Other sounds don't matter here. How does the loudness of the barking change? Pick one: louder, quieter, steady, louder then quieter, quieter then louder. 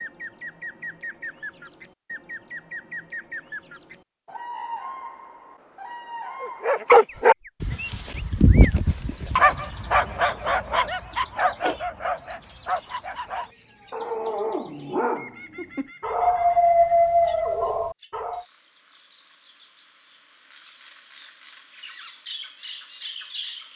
quieter then louder.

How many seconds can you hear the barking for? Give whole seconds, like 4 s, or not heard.
12 s.